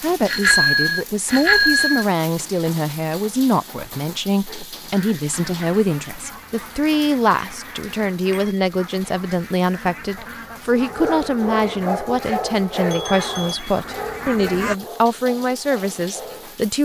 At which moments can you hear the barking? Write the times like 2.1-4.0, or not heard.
10.7-16.6.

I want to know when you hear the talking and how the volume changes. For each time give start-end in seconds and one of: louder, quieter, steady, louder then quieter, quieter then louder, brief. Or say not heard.
0.0-16.8 steady.